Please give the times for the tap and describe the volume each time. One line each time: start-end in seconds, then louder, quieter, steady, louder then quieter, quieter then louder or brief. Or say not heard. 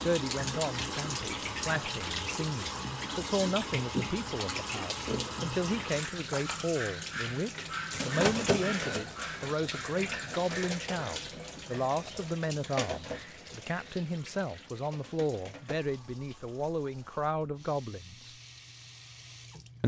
0.0-19.8 quieter.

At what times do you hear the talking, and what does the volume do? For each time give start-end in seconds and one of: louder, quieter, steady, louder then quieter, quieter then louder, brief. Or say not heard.
0.0-18.3 steady.